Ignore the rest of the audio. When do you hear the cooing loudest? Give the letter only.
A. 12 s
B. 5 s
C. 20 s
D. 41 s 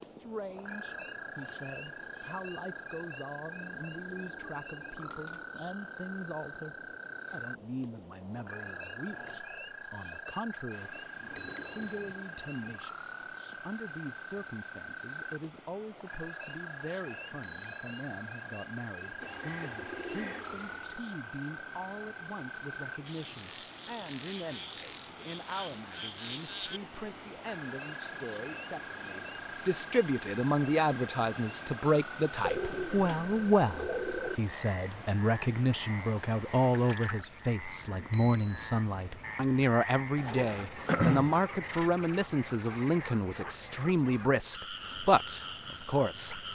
D.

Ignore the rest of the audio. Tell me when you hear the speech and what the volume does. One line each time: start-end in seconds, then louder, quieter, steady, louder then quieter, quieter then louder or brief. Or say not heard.
0.0-46.4 louder.